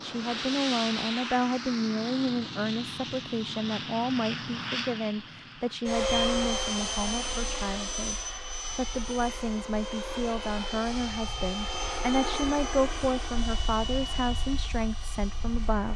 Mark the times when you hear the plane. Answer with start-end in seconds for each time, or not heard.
0.0-15.9.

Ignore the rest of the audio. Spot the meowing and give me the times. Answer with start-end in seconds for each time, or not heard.
not heard.